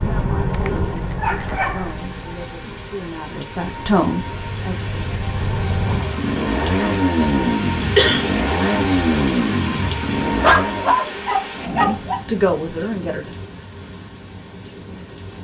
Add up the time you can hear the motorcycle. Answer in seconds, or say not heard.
11 s.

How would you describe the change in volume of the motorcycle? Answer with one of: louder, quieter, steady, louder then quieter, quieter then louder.
quieter then louder.